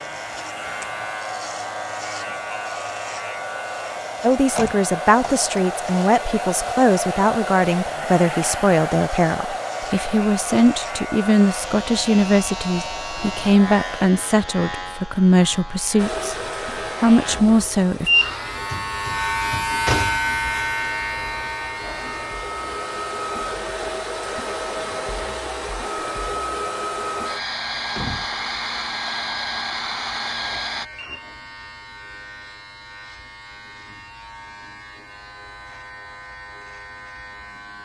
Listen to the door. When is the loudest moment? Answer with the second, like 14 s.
20 s.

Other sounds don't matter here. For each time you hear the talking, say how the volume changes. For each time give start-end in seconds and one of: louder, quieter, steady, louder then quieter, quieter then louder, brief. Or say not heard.
4.2-16.4 steady
17.0-18.1 brief.